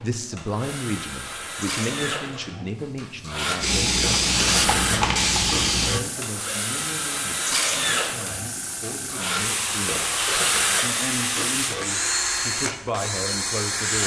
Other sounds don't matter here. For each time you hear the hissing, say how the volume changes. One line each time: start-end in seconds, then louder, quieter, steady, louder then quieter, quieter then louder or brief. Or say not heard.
3.5-11.8 quieter then louder.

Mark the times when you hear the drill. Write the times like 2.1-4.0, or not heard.
0.0-14.0.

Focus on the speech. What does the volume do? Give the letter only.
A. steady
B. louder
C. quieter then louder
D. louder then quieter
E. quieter
C.